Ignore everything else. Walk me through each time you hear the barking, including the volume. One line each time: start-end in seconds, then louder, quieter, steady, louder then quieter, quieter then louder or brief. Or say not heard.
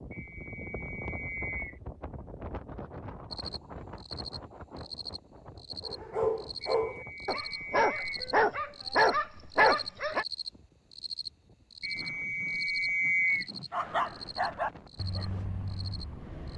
5.8-10.2 quieter then louder
13.7-16.5 brief.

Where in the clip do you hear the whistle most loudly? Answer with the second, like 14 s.
13 s.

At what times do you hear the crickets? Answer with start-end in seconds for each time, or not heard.
3.3-16.5.